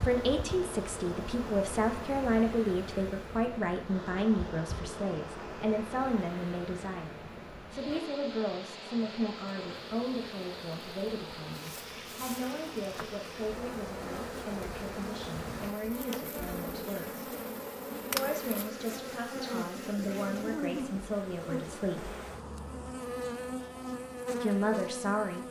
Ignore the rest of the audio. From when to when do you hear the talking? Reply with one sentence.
The talking can be heard from 0.0 to 17.2 s, from 18.1 to 22.1 s and from 24.4 to 25.4 s.